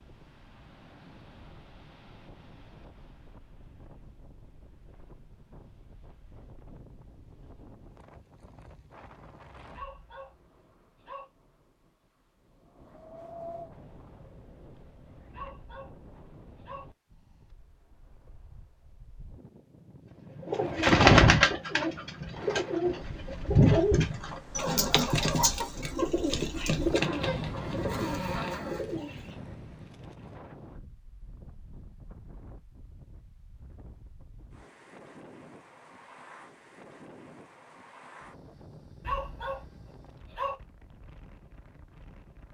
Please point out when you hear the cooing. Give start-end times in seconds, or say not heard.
20.4-29.4.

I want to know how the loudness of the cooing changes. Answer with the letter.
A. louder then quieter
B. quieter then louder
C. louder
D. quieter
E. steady
D.